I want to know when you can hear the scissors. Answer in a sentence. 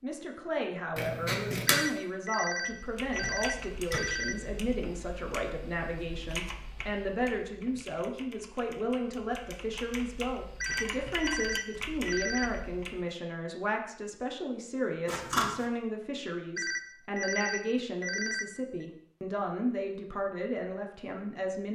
The scissors can be heard from 0.9 to 1.8 s and from 15.1 to 15.7 s.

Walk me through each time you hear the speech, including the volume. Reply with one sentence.
You can hear the speech from 0.0 to 21.7 s, at a steady volume.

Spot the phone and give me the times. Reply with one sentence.
You can hear the phone from 1.6 to 4.3 s, from 10.6 to 12.5 s and from 16.6 to 18.9 s.